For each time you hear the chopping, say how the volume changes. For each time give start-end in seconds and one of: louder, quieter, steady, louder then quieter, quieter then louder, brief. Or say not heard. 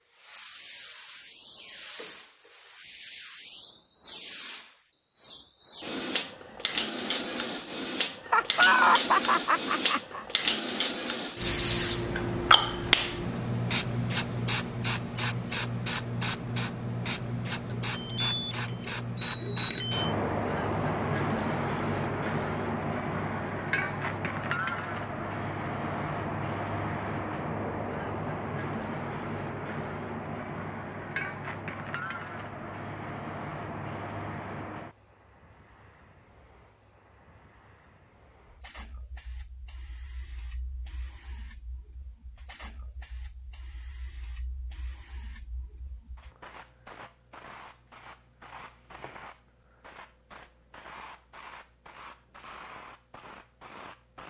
not heard.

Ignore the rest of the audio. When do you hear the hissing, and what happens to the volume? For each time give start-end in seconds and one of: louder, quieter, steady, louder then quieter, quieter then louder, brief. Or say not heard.
0.1-54.2 quieter.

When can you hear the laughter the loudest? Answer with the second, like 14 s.
9 s.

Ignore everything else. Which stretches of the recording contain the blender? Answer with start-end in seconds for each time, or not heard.
not heard.